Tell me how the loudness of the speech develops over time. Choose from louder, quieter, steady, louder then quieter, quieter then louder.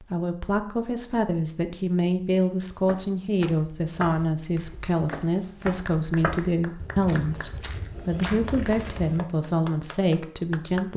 steady.